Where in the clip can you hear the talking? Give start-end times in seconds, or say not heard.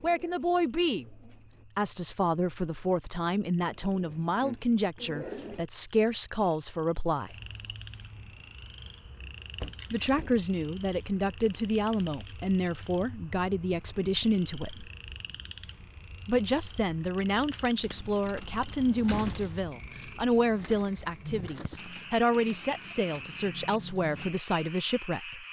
0.0-7.3, 9.9-14.9, 16.2-25.4.